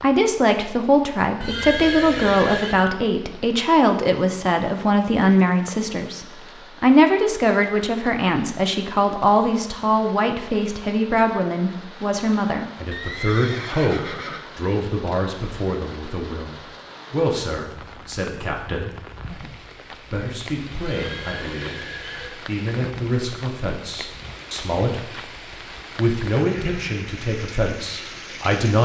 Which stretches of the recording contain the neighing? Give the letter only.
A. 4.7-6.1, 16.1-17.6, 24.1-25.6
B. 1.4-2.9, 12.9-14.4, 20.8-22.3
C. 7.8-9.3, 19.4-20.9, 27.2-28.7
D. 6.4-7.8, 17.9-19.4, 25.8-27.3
B.